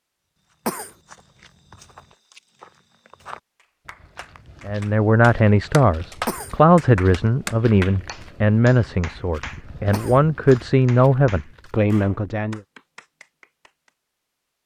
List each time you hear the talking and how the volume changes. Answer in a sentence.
You can hear the talking from 4.7 to 12.6 s, at a steady volume.